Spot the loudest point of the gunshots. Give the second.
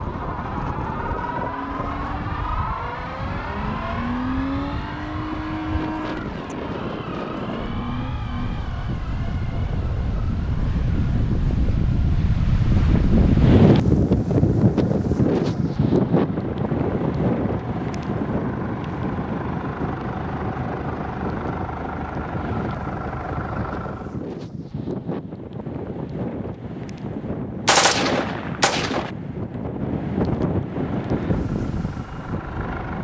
28 s.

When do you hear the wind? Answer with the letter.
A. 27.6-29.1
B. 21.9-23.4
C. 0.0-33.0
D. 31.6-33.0
C.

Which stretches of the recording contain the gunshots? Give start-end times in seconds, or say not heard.
27.6-29.1.